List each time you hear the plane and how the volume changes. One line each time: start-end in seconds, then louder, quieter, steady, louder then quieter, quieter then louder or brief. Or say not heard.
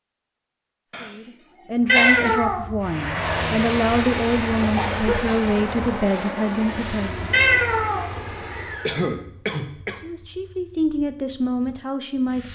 2.8-9.1 quieter.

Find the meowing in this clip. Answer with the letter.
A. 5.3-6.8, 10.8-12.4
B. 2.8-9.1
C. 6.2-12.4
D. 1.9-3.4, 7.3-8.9
D.